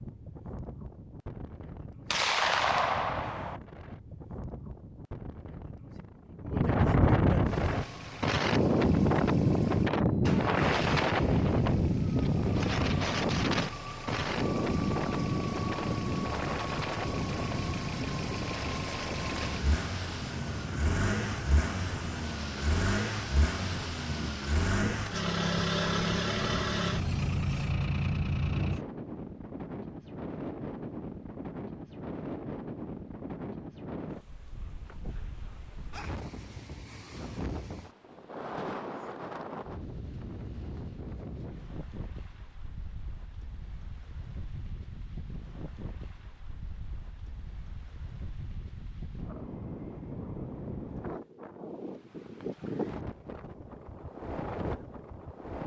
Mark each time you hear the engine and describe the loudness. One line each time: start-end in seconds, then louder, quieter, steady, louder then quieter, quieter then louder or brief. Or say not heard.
7.5-28.8 louder.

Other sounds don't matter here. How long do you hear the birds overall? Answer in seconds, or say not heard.
not heard.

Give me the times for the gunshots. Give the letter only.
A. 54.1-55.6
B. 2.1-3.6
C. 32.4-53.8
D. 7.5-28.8
B.